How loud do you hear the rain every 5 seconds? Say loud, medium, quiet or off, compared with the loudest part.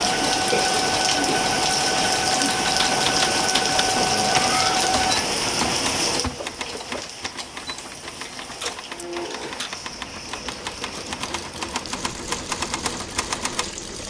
loud, medium, quiet.